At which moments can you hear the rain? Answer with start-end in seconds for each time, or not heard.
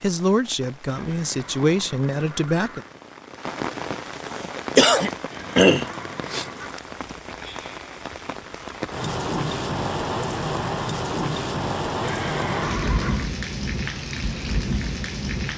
0.0-15.5.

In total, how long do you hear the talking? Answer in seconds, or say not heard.
3 s.